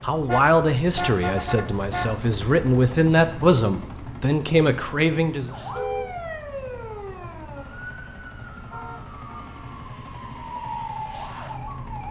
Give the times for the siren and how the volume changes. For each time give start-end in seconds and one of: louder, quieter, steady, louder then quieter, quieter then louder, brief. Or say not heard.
5.5-12.0 quieter then louder.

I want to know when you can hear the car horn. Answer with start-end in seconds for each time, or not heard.
0.2-2.1, 5.7-6.2, 8.7-9.9.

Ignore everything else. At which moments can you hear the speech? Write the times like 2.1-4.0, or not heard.
0.0-5.5.